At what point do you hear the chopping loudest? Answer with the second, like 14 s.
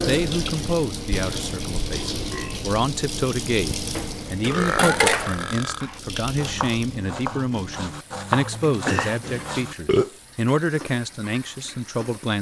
8 s.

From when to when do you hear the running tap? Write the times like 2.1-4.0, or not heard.
0.0-12.3.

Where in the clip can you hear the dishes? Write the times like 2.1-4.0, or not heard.
4.0-5.5.